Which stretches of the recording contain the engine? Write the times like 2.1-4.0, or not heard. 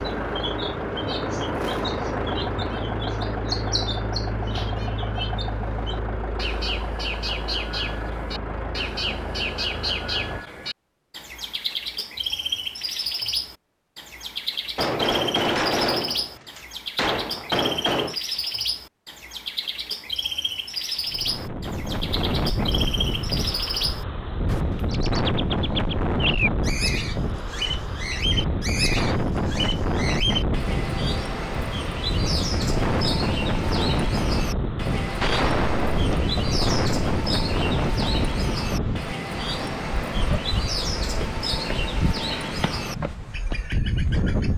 0.0-10.4.